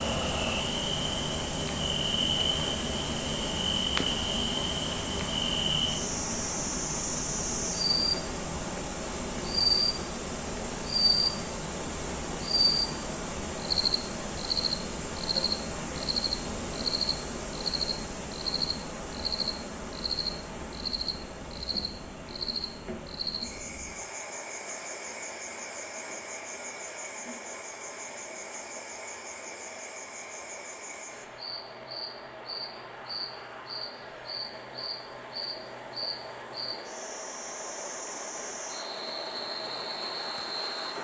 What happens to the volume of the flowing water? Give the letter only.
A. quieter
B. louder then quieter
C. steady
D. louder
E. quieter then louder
A.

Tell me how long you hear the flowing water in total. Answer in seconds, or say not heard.
41 s.